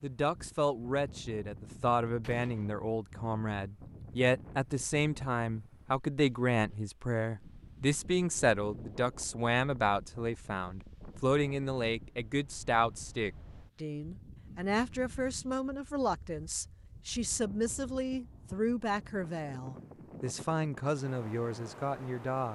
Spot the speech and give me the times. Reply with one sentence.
The speech can be heard from 0.0 to 22.4 s.